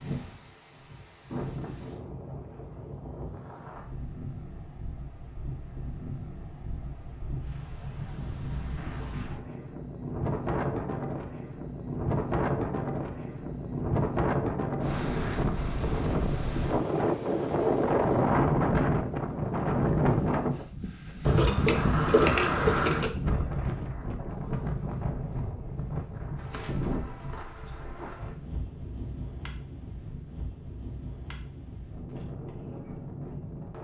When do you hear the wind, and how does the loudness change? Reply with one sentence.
You can hear the wind from 0.0 to 33.7 s, getting louder then quieter.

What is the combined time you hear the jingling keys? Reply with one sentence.
The jingling keys can be heard for 2 seconds in total.